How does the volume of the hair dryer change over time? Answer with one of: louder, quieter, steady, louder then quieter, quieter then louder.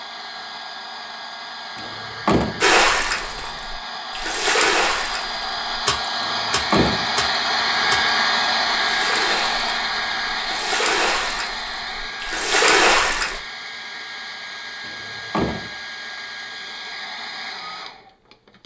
louder then quieter.